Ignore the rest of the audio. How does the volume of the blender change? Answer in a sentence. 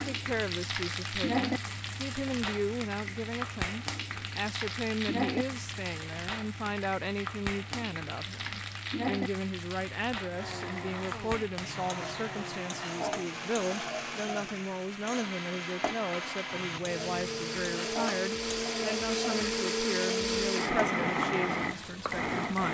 The volume of the blender goes up.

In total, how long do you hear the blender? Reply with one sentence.
The blender can be heard for 12 seconds in total.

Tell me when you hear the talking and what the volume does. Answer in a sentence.
The talking can be heard from 0.0 to 22.6 s, at a steady volume.